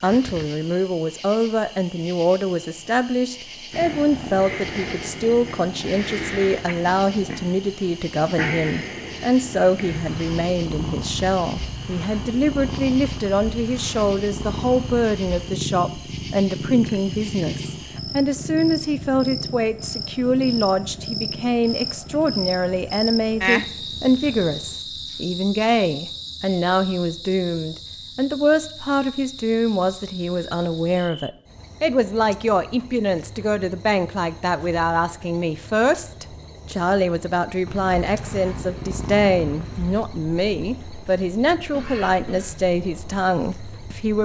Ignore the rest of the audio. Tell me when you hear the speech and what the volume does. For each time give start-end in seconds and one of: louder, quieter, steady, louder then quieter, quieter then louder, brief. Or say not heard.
0.0-44.2 steady.